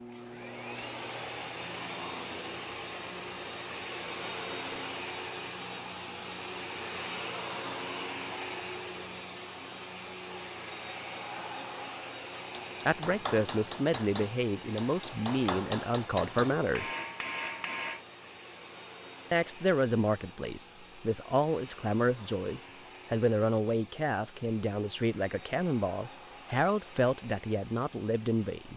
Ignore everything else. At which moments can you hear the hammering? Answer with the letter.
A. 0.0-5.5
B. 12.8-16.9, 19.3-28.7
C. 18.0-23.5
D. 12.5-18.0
D.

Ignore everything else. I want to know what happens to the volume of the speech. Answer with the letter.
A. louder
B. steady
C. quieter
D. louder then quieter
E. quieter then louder
B.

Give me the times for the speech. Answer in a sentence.
The speech can be heard from 12.8 to 16.9 s and from 19.3 to 28.7 s.